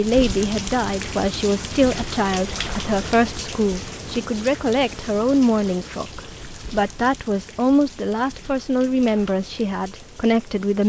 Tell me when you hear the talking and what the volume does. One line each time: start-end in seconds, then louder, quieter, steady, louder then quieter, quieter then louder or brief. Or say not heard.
0.0-10.8 steady.